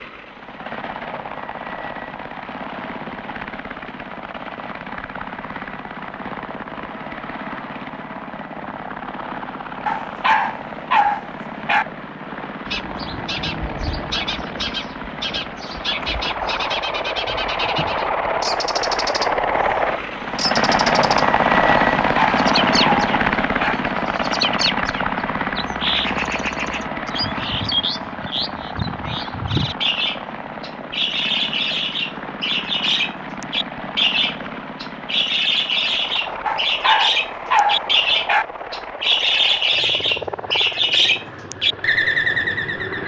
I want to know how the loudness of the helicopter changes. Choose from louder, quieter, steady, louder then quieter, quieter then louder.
louder then quieter.